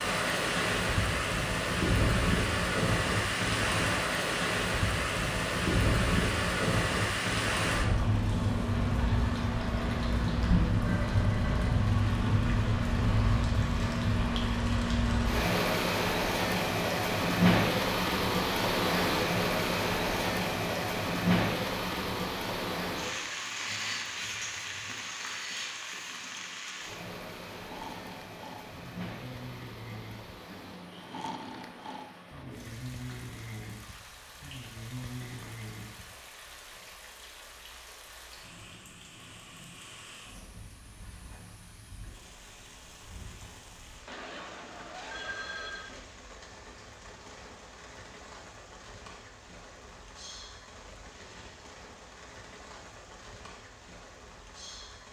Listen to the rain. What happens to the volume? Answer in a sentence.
The volume of the rain goes down.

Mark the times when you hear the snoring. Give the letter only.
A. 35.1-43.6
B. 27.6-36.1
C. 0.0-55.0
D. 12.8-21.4
B.